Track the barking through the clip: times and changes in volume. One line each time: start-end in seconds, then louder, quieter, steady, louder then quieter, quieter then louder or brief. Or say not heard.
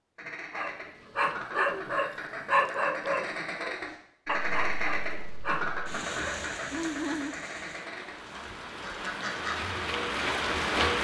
0.5-5.8 quieter.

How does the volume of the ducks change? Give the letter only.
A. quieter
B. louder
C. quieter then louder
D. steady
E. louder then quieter
E.